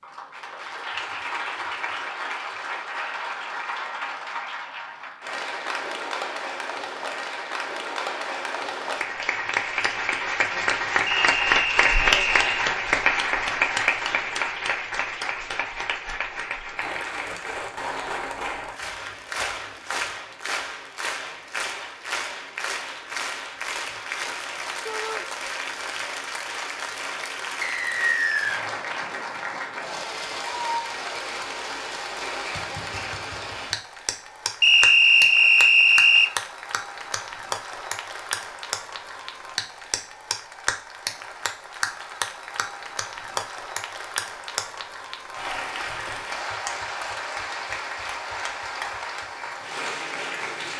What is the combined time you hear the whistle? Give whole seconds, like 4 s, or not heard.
4 s.